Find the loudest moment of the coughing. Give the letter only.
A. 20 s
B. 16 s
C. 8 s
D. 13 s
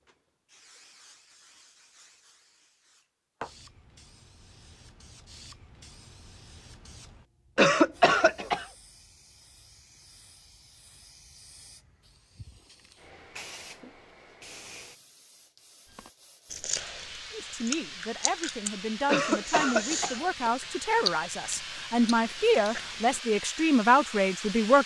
C.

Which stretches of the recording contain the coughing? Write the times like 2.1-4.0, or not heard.
7.5-8.7, 19.1-20.2.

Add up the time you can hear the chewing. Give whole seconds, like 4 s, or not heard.
7 s.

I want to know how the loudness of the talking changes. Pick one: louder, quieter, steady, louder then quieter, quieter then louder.
louder.